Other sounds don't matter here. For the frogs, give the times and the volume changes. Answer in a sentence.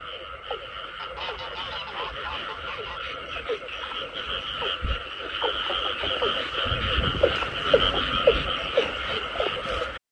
The frogs can be heard from 0.0 to 10.0 s, getting louder.